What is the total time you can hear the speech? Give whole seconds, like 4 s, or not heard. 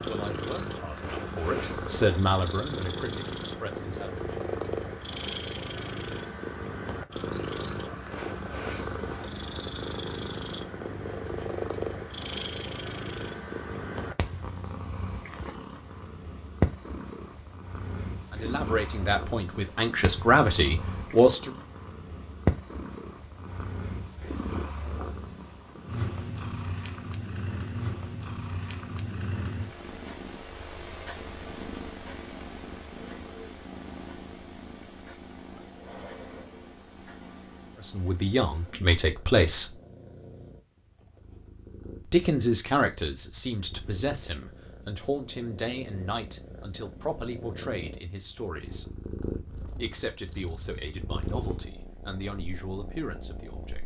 20 s.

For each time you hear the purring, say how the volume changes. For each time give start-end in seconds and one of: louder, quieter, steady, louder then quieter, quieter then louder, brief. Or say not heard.
0.0-53.8 quieter.